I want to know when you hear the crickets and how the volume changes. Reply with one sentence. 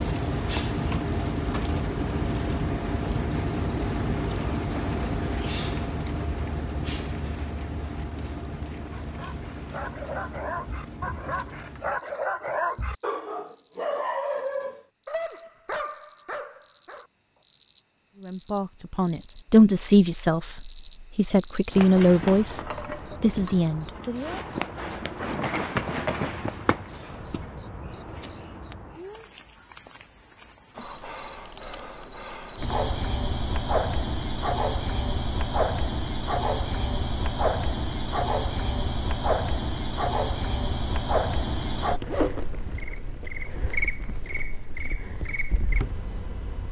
You can hear the crickets from 0.0 to 46.6 s, getting quieter then louder.